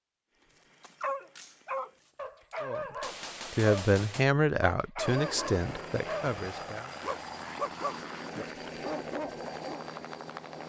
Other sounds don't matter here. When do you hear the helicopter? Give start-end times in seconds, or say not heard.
5.0-10.6.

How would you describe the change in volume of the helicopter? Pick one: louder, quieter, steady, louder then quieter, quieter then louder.
steady.